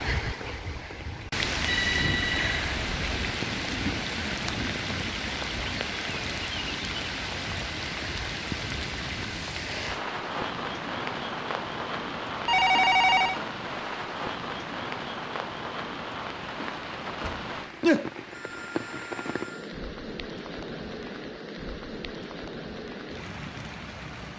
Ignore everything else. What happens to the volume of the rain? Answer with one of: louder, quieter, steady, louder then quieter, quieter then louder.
quieter.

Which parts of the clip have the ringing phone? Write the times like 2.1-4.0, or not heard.
1.6-3.2, 12.4-13.4, 17.2-19.6.